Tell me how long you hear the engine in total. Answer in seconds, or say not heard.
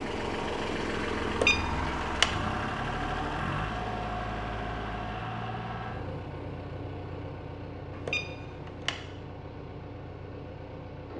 11 s.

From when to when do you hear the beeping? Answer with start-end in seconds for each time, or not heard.
1.2-2.4, 7.9-9.1.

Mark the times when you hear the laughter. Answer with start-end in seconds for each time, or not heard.
not heard.